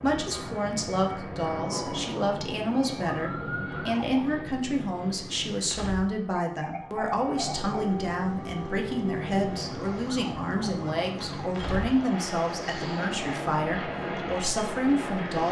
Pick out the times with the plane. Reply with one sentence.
The plane can be heard from 0.0 to 15.4 s.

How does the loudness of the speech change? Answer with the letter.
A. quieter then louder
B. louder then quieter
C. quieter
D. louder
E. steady
E.